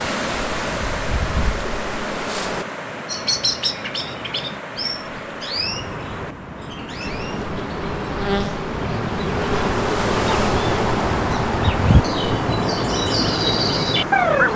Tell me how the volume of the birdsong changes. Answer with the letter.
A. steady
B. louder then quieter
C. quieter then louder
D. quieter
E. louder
C.